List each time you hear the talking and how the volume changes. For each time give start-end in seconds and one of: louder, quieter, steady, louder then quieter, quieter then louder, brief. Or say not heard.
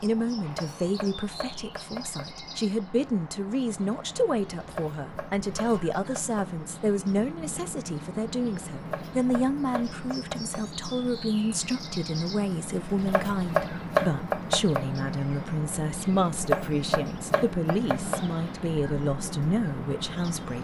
0.0-20.5 steady.